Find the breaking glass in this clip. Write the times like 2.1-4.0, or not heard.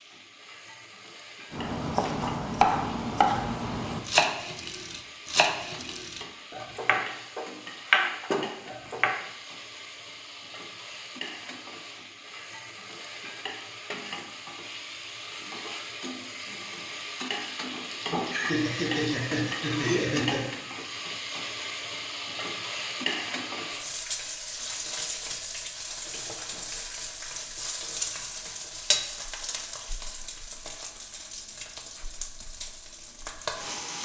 not heard.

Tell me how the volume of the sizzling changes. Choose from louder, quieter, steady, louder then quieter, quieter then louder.
louder.